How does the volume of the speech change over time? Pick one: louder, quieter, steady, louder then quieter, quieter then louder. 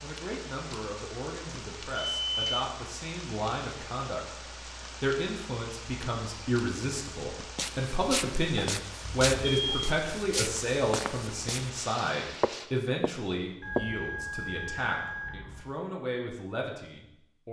louder then quieter.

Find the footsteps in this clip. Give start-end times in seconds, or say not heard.
7.5-11.7, 12.4-13.8.